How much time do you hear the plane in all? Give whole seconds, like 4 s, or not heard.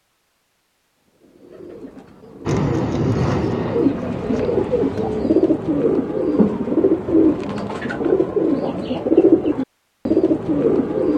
3 s.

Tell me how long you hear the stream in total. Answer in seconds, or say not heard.
not heard.